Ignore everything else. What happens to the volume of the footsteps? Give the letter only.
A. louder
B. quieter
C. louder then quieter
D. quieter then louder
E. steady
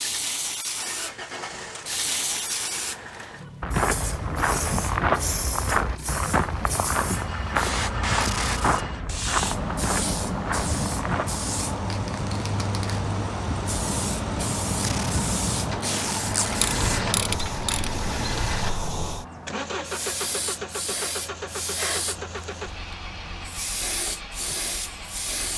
B.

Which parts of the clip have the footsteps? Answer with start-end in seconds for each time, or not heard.
3.6-11.4.